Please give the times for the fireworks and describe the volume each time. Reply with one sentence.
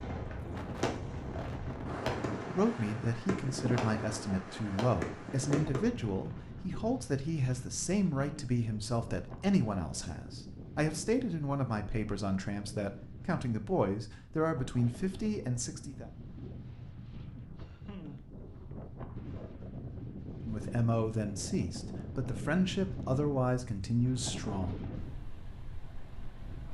The fireworks can be heard from 0.0 to 6.6 s, at a steady volume.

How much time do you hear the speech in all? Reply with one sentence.
You can hear the speech for 18 seconds altogether.